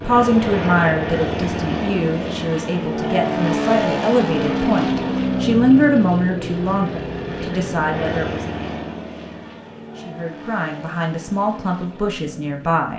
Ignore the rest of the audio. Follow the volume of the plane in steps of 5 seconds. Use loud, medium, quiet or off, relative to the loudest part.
loud, loud, quiet.